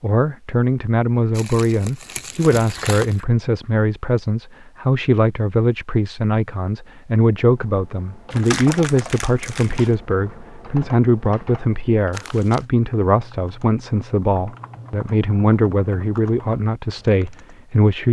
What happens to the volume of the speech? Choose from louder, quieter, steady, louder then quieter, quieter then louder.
steady.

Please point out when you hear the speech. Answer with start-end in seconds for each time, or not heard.
0.0-18.0.